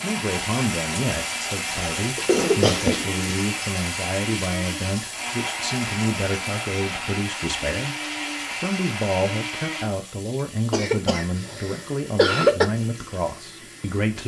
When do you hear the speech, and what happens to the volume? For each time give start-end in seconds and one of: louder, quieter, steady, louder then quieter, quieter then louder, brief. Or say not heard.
0.0-14.2 steady.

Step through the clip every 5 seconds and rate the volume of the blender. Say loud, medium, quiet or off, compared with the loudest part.
loud, loud, quiet.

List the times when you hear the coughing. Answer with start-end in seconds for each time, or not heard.
1.6-3.1, 10.7-12.7.